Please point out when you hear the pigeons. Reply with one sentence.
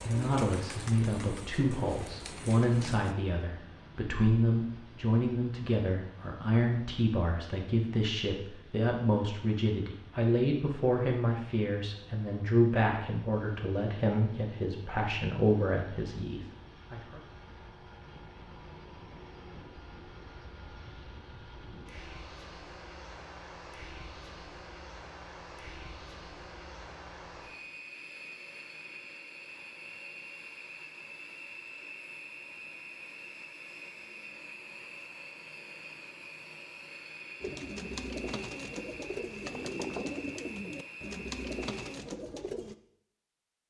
You can hear the pigeons from 0.0 to 3.1 s and from 37.4 to 42.8 s.